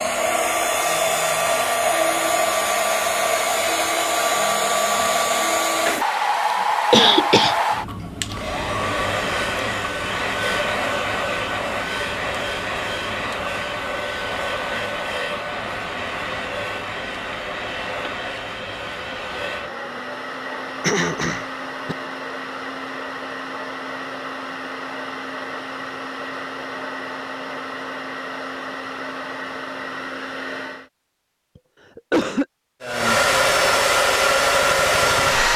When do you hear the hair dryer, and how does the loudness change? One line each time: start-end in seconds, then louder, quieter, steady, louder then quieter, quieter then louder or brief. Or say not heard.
0.0-30.9 quieter
32.8-35.5 brief.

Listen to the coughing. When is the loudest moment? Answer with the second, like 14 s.
7 s.